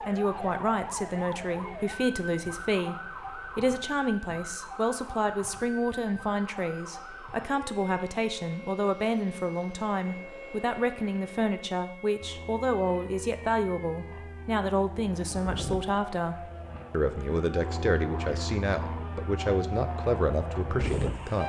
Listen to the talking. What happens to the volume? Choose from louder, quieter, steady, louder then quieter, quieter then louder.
steady.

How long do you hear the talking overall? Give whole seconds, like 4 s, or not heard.
21 s.